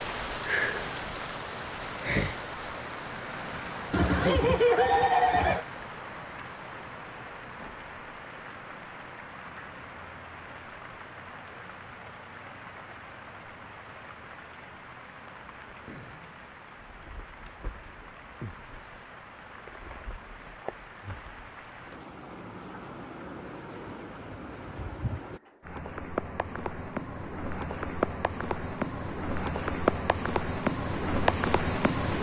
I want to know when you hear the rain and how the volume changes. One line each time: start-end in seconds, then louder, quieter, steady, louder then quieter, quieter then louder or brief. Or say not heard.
0.0-32.1 quieter then louder.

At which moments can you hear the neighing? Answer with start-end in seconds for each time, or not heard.
3.9-5.7.